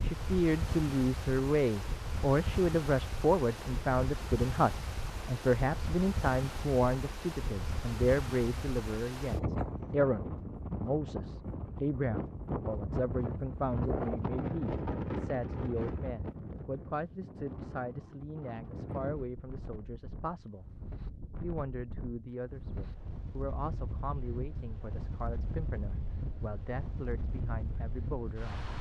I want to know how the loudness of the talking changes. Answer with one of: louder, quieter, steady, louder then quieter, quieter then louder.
quieter.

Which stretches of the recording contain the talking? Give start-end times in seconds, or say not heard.
0.0-20.6, 21.4-28.7.